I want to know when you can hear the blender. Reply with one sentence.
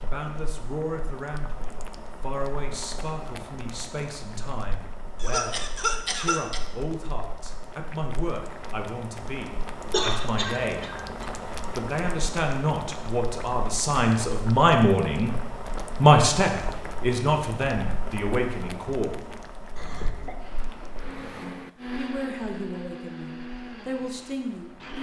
You can hear the blender from 20.4 to 24.9 s.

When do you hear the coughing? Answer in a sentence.
The coughing can be heard from 5.2 to 6.6 s, from 9.9 to 11.2 s and from 19.8 to 20.4 s.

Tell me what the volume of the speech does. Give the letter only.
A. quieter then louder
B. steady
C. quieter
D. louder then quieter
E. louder
D.